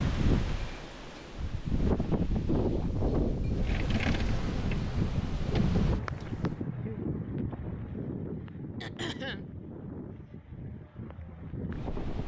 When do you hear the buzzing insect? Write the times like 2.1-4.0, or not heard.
3.5-6.6.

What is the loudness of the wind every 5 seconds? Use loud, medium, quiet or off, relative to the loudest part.
loud, loud, medium.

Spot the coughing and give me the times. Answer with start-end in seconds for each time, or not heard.
8.8-9.4.